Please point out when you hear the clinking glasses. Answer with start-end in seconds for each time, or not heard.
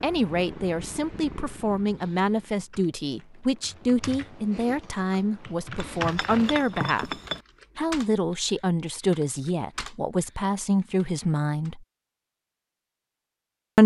5.8-7.4.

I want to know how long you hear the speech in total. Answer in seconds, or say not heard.
11 s.